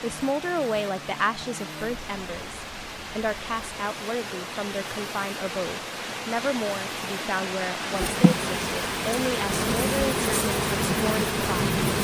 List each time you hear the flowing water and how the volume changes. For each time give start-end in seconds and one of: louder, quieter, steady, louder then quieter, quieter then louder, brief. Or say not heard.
0.0-12.0 louder.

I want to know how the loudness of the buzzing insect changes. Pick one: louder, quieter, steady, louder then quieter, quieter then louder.
louder.